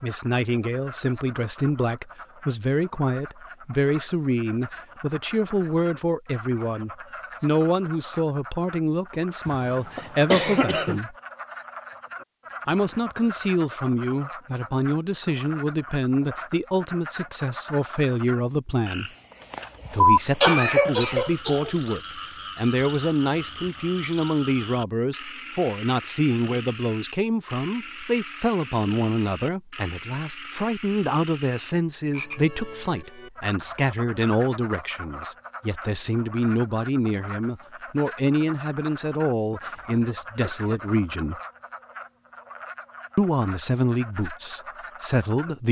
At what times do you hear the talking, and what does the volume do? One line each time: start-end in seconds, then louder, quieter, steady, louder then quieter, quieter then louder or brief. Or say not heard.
0.0-11.2 steady
12.7-19.1 steady
19.9-41.4 steady
43.1-45.6 brief.